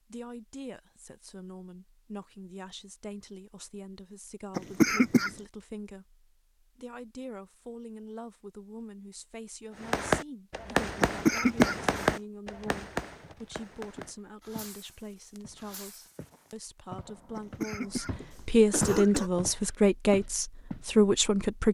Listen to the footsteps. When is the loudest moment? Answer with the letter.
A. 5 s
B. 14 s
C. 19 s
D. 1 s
C.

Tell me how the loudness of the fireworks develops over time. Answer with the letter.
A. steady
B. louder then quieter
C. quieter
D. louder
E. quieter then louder
C.